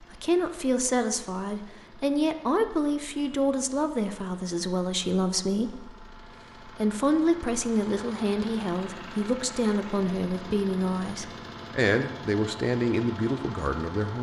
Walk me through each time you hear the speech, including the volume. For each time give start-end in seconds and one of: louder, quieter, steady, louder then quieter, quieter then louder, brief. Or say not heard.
0.0-14.1 steady.